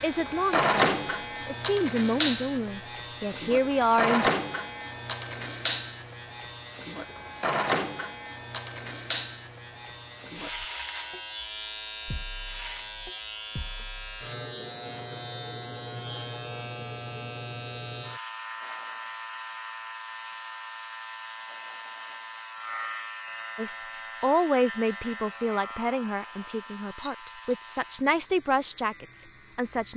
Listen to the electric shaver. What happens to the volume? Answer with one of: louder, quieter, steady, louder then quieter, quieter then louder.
quieter.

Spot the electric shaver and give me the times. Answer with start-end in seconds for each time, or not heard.
0.0-29.9.